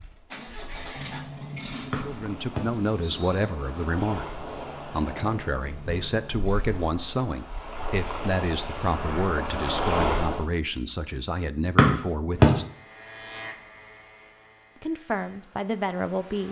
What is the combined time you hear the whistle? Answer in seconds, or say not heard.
2 s.